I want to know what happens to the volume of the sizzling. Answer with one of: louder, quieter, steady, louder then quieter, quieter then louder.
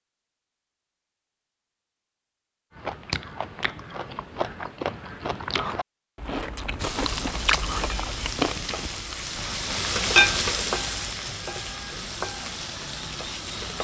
louder then quieter.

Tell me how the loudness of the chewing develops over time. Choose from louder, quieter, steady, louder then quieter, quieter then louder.
louder.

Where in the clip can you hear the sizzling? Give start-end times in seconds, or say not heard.
6.8-13.7.